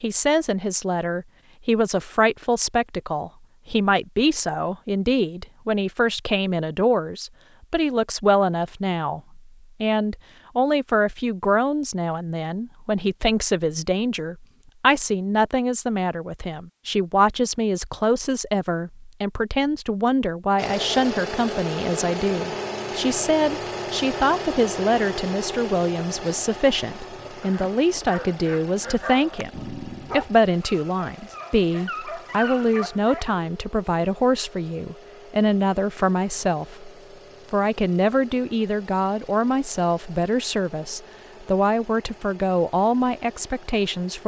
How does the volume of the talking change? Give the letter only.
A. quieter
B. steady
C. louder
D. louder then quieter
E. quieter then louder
B.